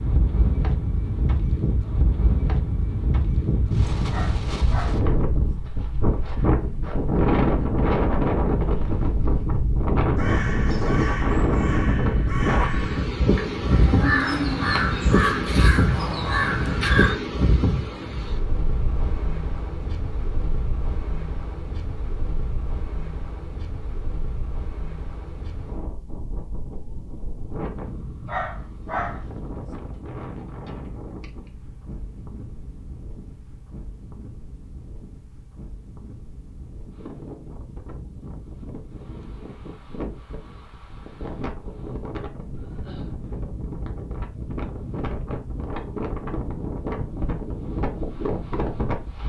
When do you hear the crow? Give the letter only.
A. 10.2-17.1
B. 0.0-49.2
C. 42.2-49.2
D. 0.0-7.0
A.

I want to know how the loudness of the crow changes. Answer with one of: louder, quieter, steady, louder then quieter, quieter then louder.
louder.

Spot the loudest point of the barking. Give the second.
29 s.